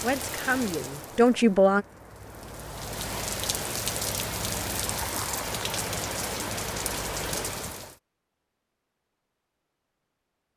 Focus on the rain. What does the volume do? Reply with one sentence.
The volume of the rain goes up.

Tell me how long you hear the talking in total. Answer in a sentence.
The talking can be heard for 2 seconds in total.